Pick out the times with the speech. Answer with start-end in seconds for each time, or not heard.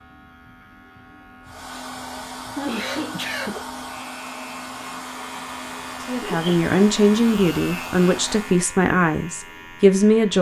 6.0-10.3.